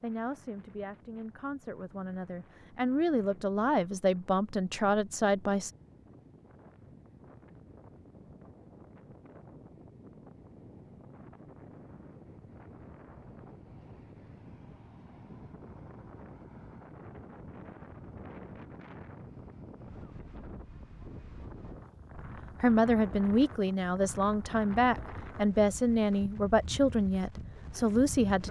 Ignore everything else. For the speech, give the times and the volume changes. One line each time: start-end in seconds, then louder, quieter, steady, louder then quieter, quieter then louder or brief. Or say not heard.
0.0-5.7 louder
22.6-28.4 steady.